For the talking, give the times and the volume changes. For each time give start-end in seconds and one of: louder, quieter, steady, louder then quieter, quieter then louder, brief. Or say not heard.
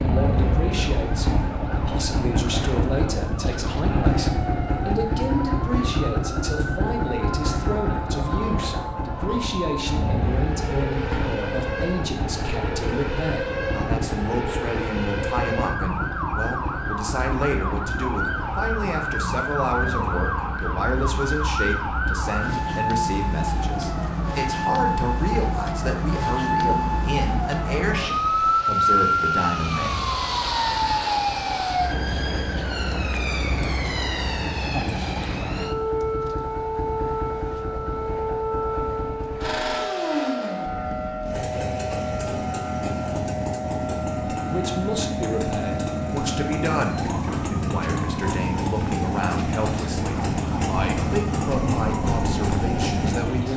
0.0-30.0 steady
44.5-53.5 steady.